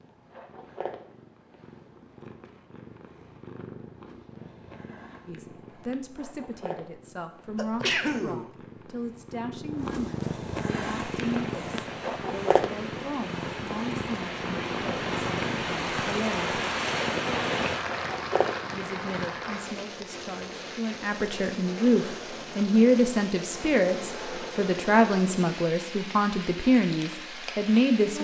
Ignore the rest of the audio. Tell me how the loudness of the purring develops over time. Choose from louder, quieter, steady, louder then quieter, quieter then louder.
louder.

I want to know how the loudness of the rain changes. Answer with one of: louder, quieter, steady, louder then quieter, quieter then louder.
louder then quieter.